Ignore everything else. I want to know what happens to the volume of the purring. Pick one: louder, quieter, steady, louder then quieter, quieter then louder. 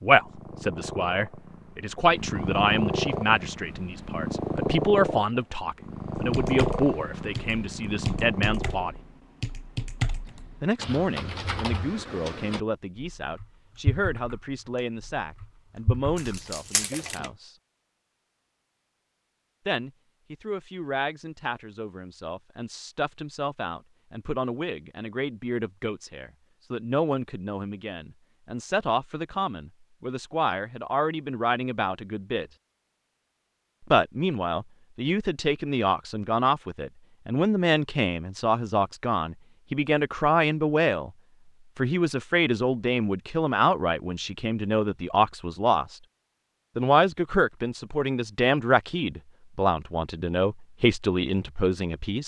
louder then quieter.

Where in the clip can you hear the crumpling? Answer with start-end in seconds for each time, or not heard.
16.1-17.2.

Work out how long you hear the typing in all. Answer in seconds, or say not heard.
11 s.